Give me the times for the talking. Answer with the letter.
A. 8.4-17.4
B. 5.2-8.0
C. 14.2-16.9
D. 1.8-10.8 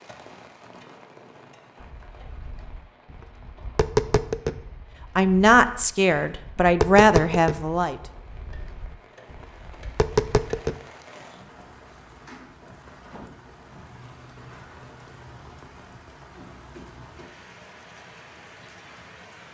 B.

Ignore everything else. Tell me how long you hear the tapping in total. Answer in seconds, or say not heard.
9 s.